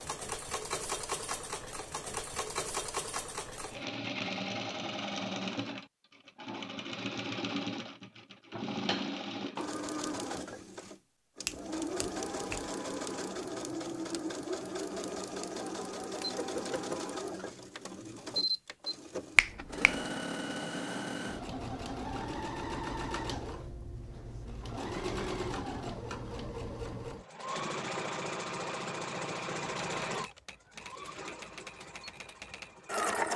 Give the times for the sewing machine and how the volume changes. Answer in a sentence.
The sewing machine can be heard from 0.0 to 33.3 s, at a steady volume.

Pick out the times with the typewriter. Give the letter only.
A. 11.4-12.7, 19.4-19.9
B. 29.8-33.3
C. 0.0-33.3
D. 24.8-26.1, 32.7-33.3
B.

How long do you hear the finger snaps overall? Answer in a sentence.
You can hear the finger snaps for 2 seconds altogether.